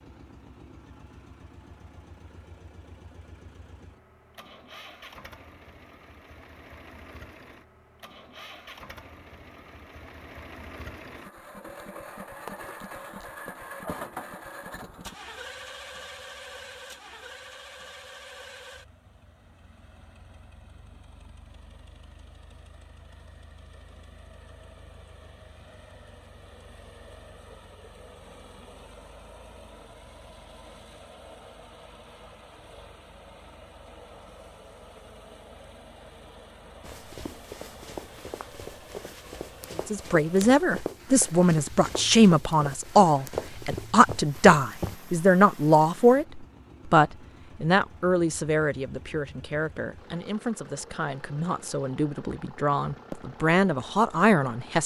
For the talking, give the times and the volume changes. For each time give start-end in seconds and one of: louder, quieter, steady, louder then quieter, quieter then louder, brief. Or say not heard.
39.9-54.8 quieter then louder.